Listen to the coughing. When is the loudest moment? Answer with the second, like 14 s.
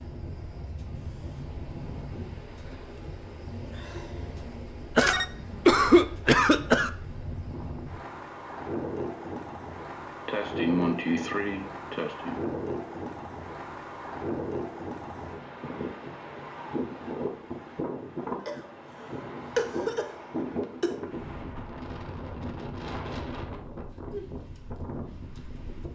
6 s.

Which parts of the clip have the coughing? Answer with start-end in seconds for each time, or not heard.
5.0-6.9, 10.2-12.4, 18.4-20.9.